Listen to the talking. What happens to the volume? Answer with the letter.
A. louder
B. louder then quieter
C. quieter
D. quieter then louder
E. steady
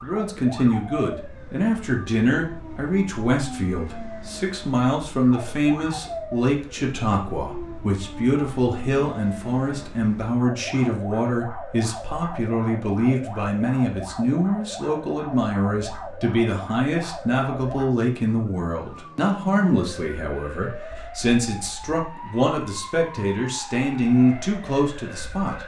E.